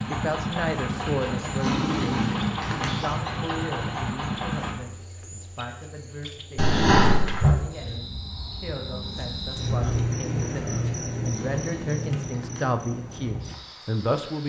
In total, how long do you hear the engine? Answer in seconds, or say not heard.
5 s.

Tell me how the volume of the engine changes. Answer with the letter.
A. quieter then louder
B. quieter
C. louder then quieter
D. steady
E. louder
D.